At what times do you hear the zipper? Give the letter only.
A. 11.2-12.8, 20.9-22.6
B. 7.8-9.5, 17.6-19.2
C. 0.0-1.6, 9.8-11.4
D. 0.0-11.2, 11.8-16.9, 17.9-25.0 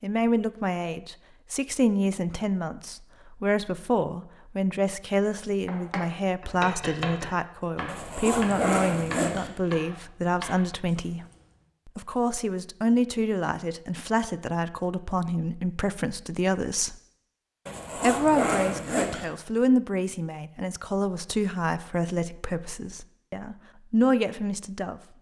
B.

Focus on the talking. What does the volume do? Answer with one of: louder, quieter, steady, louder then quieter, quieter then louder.
steady.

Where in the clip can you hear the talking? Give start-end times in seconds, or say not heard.
0.0-11.2, 11.8-16.9, 17.9-25.0.